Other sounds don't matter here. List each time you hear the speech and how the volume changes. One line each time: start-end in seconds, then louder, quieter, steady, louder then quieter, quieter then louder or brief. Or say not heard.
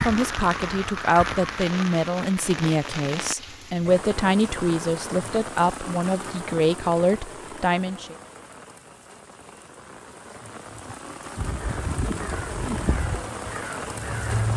0.0-8.2 steady.